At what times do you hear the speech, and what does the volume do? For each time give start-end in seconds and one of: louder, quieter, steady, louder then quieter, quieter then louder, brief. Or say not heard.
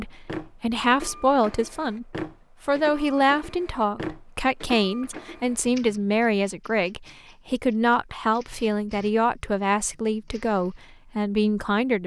0.0-12.0 steady.